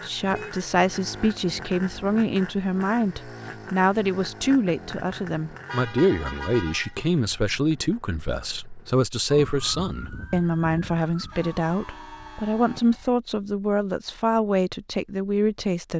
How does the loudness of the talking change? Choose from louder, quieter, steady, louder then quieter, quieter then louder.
steady.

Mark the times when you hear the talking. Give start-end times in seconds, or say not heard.
0.0-15.9.